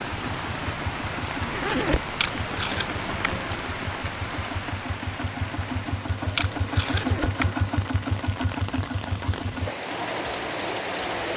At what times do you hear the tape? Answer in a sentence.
You can hear the tape from 2.1 to 3.4 s and from 6.3 to 7.5 s.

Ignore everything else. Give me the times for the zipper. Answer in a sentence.
You can hear the zipper from 1.4 to 2.1 s and from 6.8 to 7.3 s.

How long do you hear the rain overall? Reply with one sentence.
You can hear the rain for 11 seconds altogether.